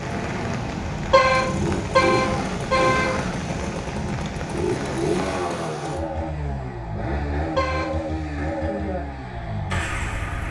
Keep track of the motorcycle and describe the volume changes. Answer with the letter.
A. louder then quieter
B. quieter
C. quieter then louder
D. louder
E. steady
E.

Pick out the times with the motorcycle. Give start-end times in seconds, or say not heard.
0.0-10.4.